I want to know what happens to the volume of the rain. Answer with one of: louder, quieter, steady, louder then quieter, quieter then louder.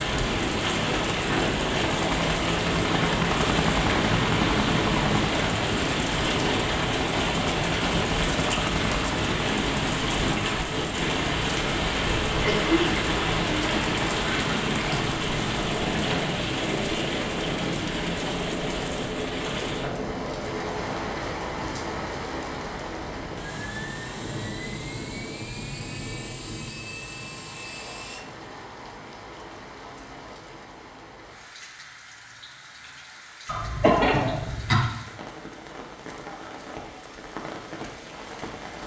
quieter.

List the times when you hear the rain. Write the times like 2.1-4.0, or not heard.
0.0-38.8.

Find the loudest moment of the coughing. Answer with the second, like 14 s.
34 s.